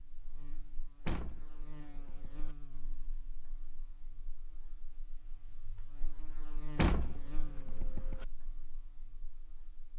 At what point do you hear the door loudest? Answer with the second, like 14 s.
7 s.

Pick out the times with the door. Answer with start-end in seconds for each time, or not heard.
1.1-2.5, 6.8-8.2.